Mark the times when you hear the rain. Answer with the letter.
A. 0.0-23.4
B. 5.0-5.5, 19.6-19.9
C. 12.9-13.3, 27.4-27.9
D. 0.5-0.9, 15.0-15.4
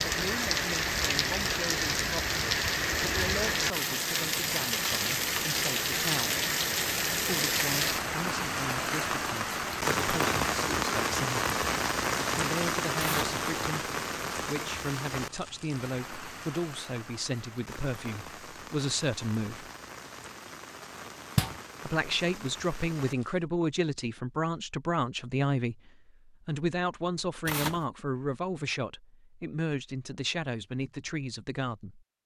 A.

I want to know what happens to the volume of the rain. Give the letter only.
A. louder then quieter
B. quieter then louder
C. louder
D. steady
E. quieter
E.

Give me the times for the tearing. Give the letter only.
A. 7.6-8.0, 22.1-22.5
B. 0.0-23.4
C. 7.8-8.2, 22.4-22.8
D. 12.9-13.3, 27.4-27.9
D.